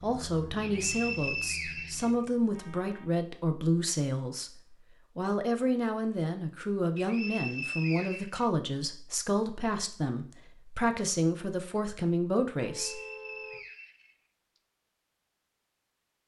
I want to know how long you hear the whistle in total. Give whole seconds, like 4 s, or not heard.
5 s.